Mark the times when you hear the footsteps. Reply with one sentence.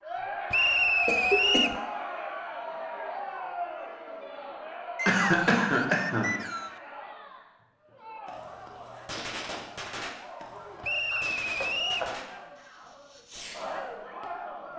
You can't hear the footsteps here.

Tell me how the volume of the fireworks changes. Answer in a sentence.
The loudness of the fireworks goes down.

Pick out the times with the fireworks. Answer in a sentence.
You can hear the fireworks from 8.2 to 14.3 s.